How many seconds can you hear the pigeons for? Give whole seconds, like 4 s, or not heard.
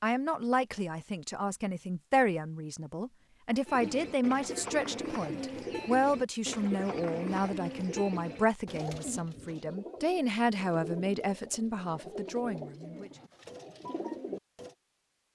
11 s.